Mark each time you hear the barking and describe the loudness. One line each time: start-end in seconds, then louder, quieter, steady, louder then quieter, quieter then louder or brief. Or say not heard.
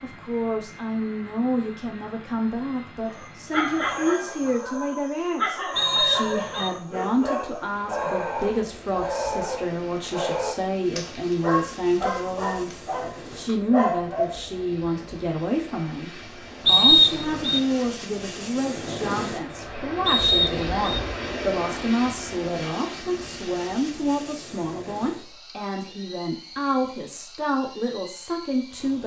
3.0-14.6 steady.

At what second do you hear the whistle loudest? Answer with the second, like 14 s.
17 s.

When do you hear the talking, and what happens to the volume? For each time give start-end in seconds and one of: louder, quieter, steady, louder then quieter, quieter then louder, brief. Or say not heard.
0.0-29.0 steady.